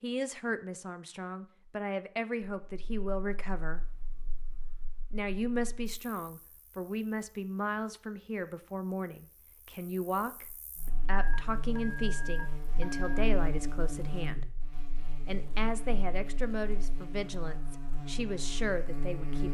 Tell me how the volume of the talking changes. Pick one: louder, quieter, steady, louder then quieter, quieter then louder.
steady.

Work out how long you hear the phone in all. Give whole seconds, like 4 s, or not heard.
2 s.